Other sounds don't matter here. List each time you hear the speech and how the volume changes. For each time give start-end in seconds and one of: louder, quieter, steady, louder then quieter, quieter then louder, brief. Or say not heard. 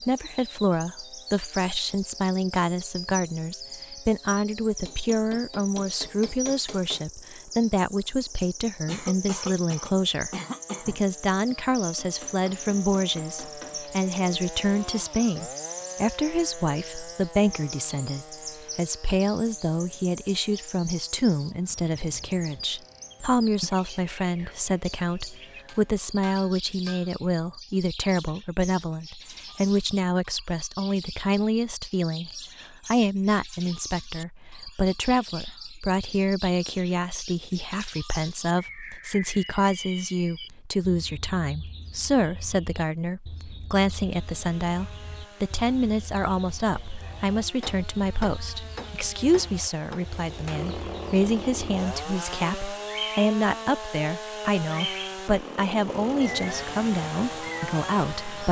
0.0-58.4 steady.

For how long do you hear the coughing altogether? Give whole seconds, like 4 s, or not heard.
2 s.